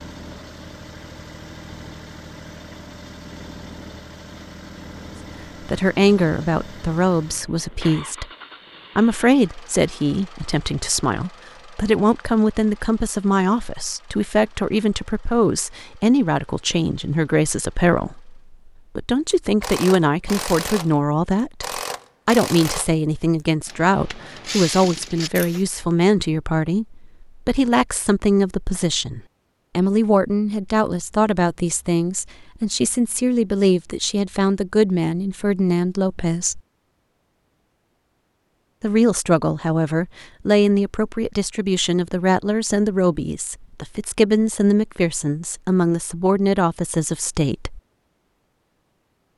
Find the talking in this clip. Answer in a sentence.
You can hear the talking from 5.7 to 8.2 s, from 8.9 to 36.6 s and from 38.8 to 47.8 s.